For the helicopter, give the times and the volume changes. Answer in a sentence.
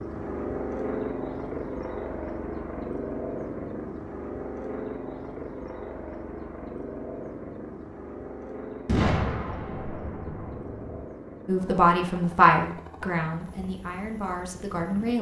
The helicopter can be heard from 0.0 to 15.1 s, getting quieter.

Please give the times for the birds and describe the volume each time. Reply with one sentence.
You can't hear the birds here.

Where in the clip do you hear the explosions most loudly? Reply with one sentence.
The volume of the explosions peaks at 9 seconds.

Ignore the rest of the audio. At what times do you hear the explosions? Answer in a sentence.
You can hear the explosions from 8.8 to 11.1 s.